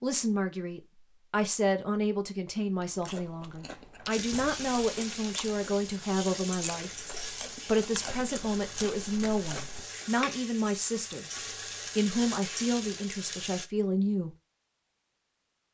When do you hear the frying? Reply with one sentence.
The frying can be heard from 4.1 to 13.7 s.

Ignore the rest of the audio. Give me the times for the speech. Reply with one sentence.
You can hear the speech from 0.0 to 7.0 s, from 7.7 to 11.2 s and from 11.9 to 14.3 s.